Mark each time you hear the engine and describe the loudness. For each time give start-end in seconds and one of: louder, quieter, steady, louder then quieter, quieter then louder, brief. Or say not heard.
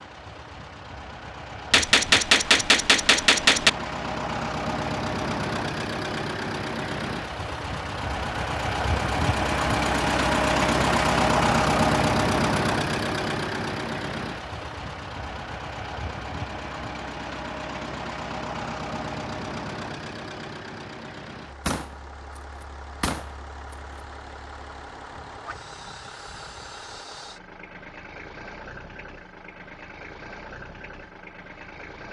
0.0-32.0 louder then quieter.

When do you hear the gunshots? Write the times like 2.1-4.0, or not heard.
1.7-3.7, 21.6-22.4, 23.0-23.8.